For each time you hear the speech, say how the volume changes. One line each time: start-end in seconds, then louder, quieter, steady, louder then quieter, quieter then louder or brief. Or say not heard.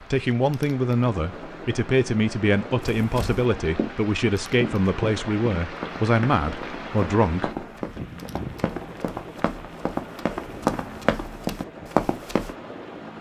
0.1-7.7 steady.